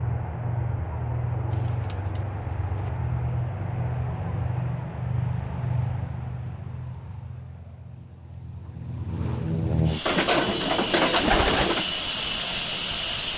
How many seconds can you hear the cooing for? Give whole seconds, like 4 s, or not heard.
3 s.